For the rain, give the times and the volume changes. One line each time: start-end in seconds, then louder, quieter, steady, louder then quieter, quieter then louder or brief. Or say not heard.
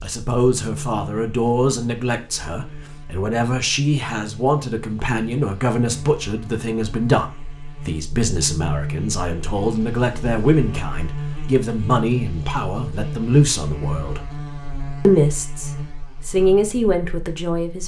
not heard.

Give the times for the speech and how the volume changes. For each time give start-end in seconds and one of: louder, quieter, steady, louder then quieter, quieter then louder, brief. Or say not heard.
0.0-14.2 steady
15.1-17.8 brief.